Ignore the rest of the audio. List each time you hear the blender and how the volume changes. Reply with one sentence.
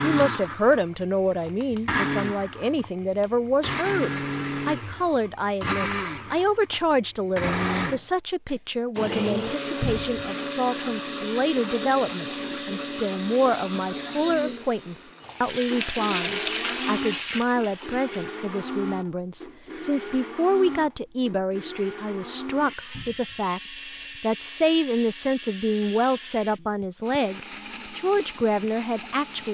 The blender can be heard from 0.0 to 29.4 s, getting quieter.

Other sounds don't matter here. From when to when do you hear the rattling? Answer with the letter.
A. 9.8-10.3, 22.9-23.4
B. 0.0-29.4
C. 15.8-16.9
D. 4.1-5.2
C.